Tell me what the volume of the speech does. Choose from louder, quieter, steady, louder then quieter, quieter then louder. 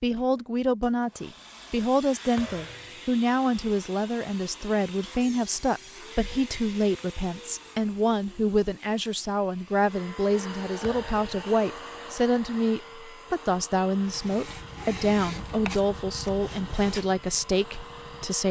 steady.